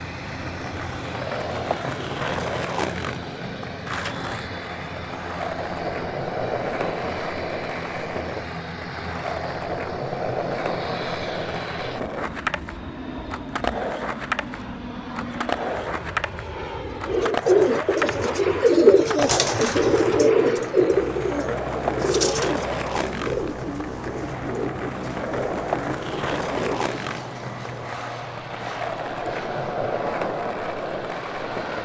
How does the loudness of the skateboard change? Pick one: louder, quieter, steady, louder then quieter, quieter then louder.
steady.